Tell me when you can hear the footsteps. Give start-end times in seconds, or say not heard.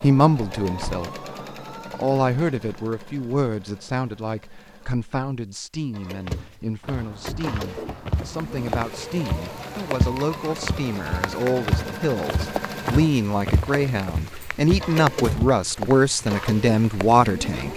6.2-15.6.